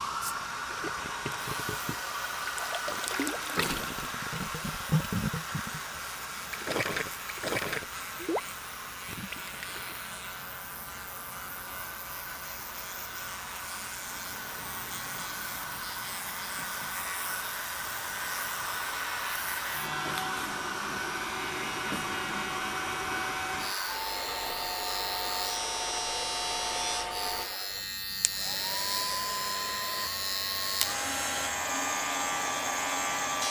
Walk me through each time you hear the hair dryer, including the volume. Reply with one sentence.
You can hear the hair dryer from 0.0 to 33.4 s, getting quieter then louder.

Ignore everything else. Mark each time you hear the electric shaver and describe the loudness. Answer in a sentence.
You can hear the electric shaver from 0.0 to 33.4 s, getting louder.